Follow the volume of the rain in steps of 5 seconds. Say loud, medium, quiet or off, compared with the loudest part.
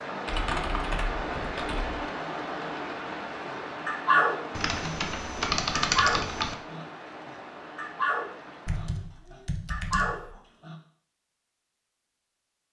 loud, medium, off.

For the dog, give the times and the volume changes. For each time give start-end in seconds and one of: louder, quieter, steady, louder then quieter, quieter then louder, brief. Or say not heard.
3.5-10.8 quieter then louder.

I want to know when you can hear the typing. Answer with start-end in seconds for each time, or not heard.
0.2-2.0, 4.5-6.5, 8.7-10.3.